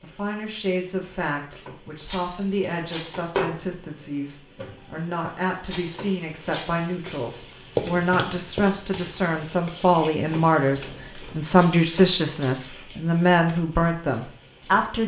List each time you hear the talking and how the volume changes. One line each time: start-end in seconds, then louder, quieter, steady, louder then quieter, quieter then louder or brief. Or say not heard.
0.0-15.0 louder.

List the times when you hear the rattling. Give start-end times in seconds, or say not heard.
2.0-3.2, 5.7-6.8, 11.6-12.7.